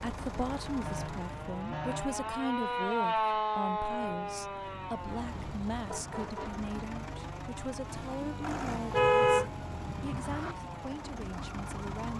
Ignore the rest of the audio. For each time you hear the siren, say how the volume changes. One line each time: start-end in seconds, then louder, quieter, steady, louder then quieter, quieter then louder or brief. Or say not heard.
0.1-12.1 louder then quieter.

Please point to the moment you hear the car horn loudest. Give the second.
9 s.